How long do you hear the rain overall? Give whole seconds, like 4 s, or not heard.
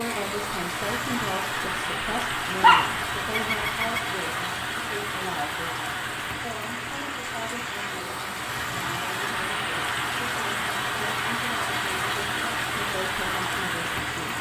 14 s.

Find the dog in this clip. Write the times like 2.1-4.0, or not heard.
2.6-4.0.